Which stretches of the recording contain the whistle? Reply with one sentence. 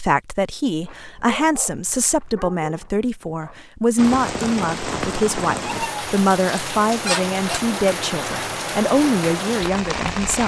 You can't hear the whistle here.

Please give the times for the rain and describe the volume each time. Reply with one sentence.
The rain can be heard from 4.0 to 10.4 s, at a steady volume.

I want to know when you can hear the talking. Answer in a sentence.
The talking can be heard from 0.0 to 10.4 s.